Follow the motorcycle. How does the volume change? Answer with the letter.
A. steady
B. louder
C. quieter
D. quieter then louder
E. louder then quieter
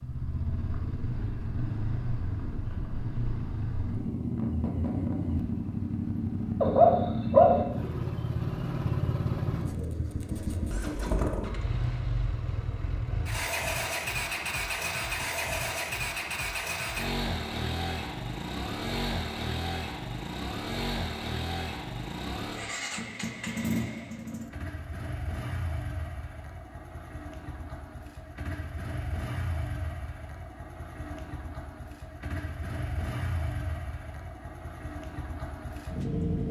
C.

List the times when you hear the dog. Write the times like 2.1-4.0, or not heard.
6.6-7.6.